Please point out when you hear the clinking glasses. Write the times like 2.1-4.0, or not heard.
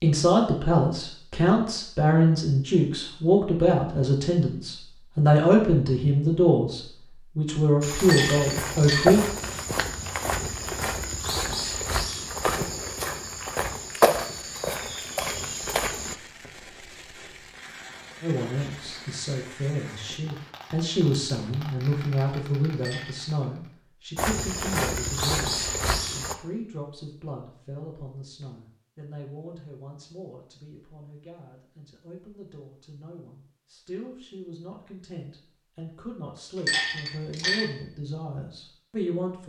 8.0-9.2, 22.8-23.3, 36.6-37.7.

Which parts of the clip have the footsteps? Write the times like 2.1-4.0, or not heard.
7.8-16.1, 24.1-26.4.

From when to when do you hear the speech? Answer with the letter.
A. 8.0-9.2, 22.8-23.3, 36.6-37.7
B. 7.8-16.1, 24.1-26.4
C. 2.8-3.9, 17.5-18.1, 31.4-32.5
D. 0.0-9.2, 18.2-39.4
D.